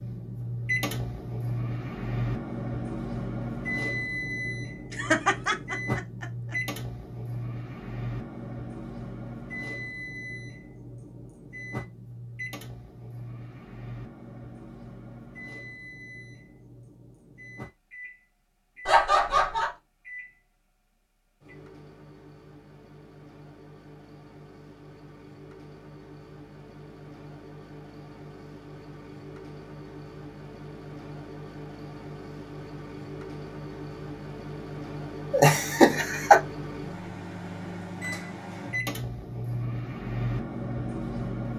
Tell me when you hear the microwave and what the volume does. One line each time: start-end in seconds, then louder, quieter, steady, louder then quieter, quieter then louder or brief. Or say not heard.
0.0-41.5 quieter then louder.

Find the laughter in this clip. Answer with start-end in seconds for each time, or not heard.
4.9-6.5, 18.9-19.7, 35.3-36.4.